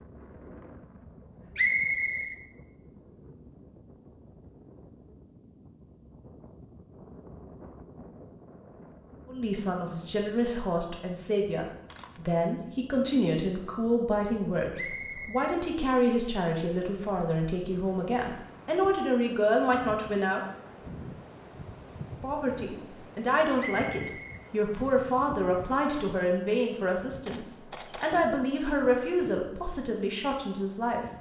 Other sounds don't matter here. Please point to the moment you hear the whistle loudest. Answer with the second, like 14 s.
2 s.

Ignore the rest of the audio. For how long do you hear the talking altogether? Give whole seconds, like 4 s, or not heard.
20 s.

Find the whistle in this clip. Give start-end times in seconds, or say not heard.
1.6-2.4, 14.8-15.6, 23.6-25.0.